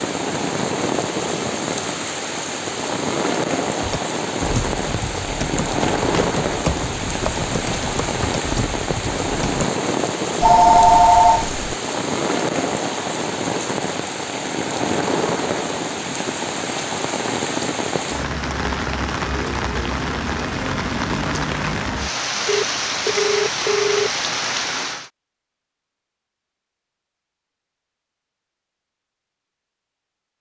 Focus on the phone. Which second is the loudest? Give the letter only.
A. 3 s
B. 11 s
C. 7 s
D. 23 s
B.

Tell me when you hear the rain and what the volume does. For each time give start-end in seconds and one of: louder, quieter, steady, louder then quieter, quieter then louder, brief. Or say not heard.
0.0-25.1 steady.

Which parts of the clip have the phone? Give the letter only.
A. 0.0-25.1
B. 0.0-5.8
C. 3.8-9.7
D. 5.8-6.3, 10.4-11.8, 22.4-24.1
D.